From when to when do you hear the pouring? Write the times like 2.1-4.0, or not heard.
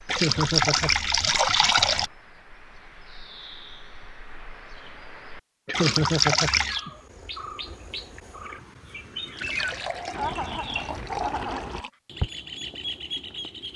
0.1-2.1, 5.7-6.8, 9.3-11.9.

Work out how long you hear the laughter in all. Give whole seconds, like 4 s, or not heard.
5 s.